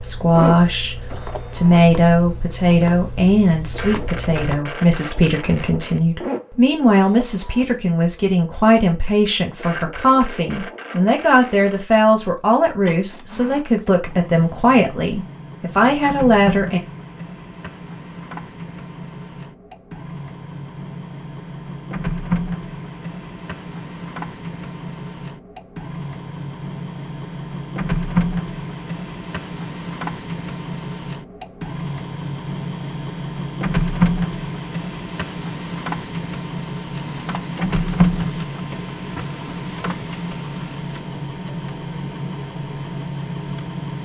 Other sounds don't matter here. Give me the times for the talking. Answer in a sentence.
You can hear the talking from 0.0 to 16.8 s.